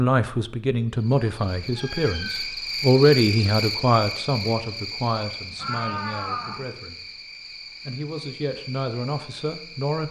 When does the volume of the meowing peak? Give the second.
6 s.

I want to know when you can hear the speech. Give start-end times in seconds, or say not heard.
0.0-7.0, 7.8-10.0.